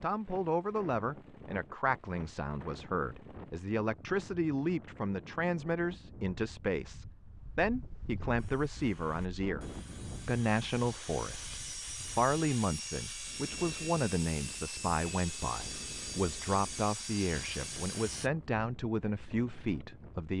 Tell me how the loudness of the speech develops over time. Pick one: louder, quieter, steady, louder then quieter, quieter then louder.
steady.